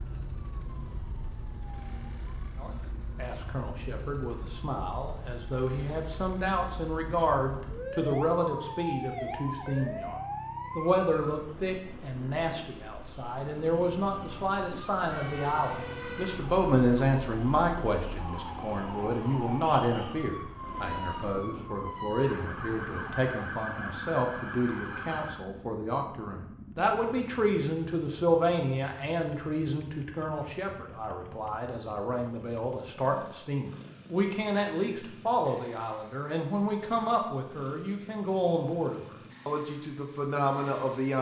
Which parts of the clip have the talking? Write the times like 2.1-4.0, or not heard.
2.6-41.1.